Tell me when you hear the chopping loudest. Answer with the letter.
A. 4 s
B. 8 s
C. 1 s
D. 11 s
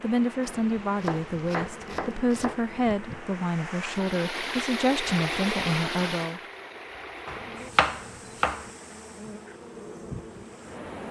B.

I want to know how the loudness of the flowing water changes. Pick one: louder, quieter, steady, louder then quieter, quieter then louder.
louder then quieter.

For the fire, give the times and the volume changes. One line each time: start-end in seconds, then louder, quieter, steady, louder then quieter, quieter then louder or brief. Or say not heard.
not heard.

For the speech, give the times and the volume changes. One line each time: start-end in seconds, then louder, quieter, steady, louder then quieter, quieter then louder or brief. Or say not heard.
0.0-6.4 steady.